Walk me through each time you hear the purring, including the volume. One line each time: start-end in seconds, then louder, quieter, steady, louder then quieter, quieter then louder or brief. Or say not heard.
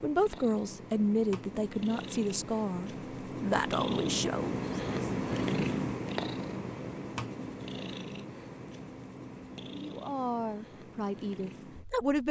0.0-12.2 louder then quieter.